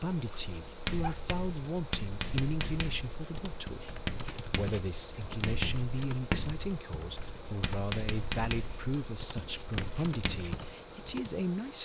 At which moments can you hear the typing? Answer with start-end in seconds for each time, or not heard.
3.4-11.6.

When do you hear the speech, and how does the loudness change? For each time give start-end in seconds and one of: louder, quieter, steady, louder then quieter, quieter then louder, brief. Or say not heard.
0.0-11.8 steady.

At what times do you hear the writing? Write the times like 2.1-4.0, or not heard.
0.1-10.7.